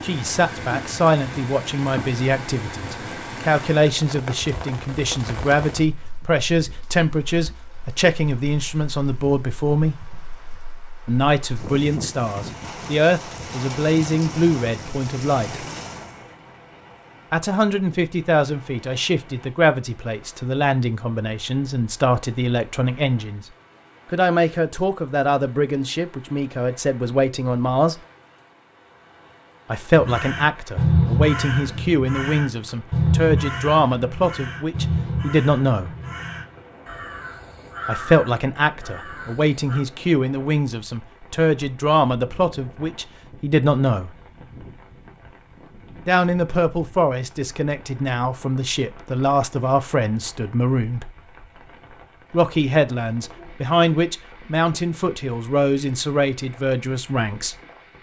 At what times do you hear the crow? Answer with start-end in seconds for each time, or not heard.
29.9-39.8.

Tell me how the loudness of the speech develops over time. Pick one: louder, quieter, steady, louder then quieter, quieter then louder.
steady.